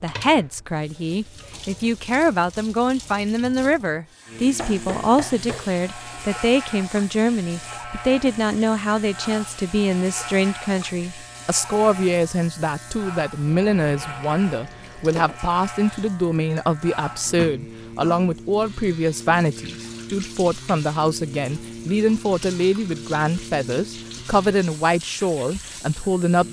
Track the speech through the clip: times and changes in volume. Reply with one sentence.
The speech can be heard from 0.0 to 26.4 s, at a steady volume.